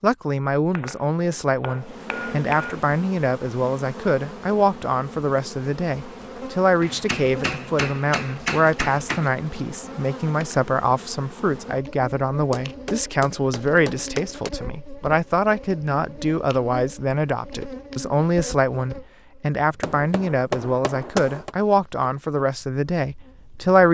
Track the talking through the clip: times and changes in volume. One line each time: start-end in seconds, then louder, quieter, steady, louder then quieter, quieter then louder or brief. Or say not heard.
0.0-23.8 steady.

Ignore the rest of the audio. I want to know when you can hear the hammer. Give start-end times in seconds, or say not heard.
0.7-2.9, 6.8-9.3, 12.5-14.5, 19.8-21.6.